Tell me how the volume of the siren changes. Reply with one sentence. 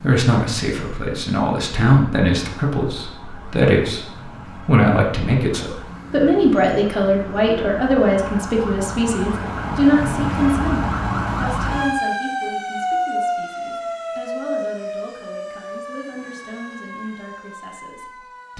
The volume of the siren goes up, then down.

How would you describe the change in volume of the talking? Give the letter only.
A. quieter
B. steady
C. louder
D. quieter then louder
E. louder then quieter
A.